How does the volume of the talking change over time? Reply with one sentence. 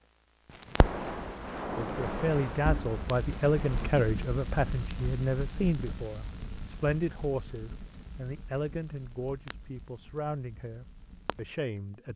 The volume of the talking goes down.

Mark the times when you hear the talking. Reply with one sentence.
You can hear the talking from 1.8 to 12.1 s.